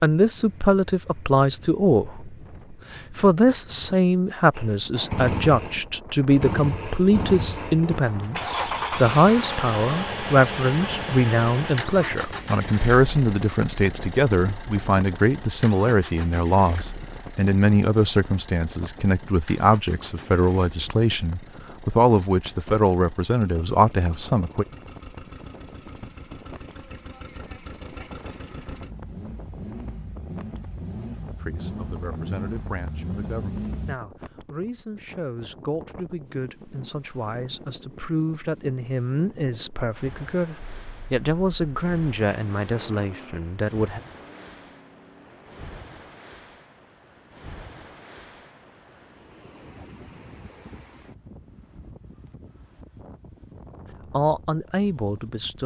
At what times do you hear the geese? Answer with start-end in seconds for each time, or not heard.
not heard.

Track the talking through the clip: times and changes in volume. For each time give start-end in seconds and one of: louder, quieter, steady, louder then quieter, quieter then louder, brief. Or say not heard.
0.0-24.6 steady
31.4-44.0 louder
54.1-55.6 brief.